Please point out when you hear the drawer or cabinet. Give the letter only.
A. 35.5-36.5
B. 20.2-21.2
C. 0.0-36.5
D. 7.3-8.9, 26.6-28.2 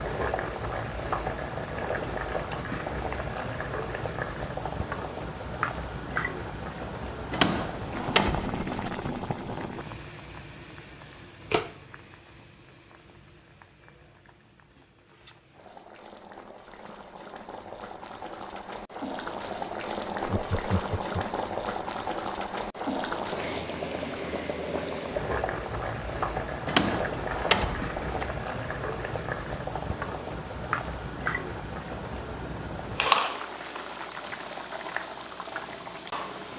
D.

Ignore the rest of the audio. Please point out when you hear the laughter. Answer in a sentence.
You can hear the laughter from 20.2 to 21.2 s.